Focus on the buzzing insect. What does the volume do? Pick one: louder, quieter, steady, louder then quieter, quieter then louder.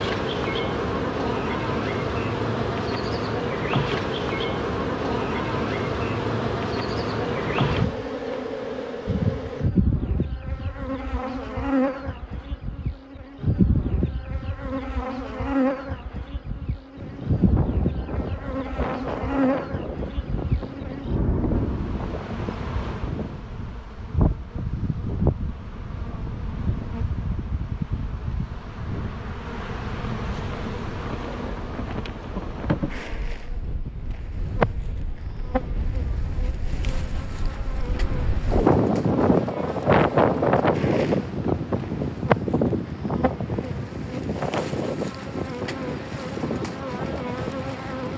quieter.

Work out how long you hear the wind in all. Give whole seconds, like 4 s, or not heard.
31 s.